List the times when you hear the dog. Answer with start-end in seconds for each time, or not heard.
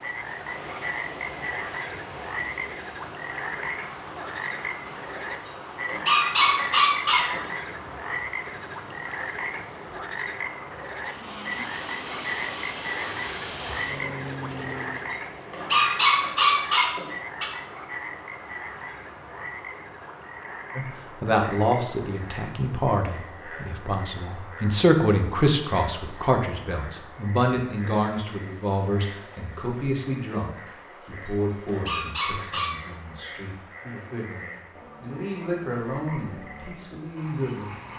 5.5-7.5, 15.1-17.4, 31.2-32.8.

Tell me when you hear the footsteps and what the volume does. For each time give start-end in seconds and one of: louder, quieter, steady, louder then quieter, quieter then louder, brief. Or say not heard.
not heard.